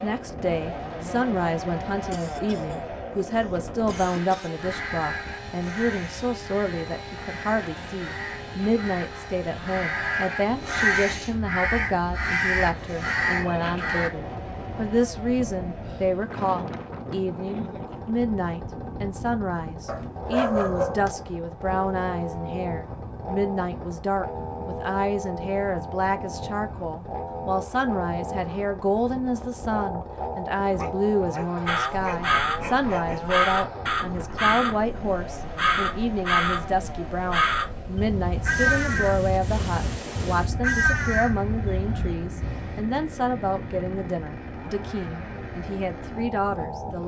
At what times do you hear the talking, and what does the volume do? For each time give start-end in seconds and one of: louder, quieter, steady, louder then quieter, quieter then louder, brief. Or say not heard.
0.0-47.0 steady.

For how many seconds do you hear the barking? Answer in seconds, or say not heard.
5 s.